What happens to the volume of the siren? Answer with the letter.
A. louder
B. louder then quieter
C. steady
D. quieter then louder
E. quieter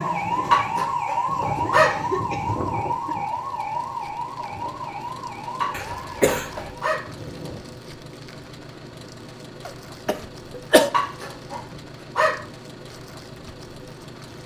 E.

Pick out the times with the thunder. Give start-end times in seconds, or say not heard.
not heard.